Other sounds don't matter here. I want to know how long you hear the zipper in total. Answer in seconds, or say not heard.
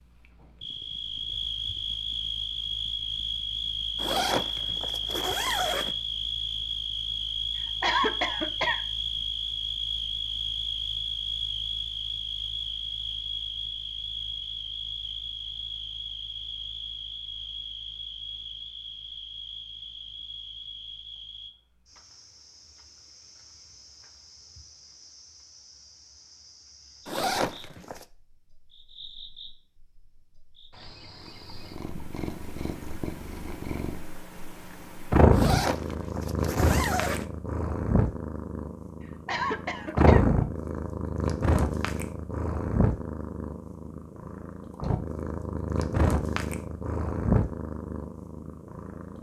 5 s.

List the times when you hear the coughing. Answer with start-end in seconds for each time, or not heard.
7.5-8.8, 39.0-40.2.